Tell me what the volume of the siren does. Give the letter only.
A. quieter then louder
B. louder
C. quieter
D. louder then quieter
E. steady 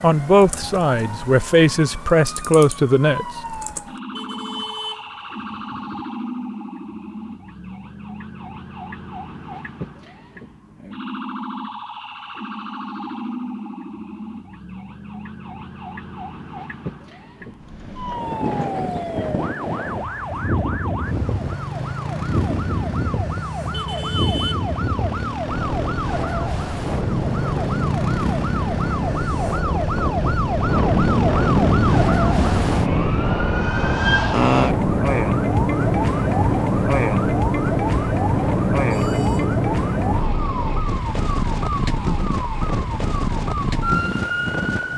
B.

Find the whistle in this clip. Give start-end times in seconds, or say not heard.
not heard.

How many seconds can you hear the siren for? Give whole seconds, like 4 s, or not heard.
45 s.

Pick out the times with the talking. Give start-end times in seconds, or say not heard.
0.0-3.2.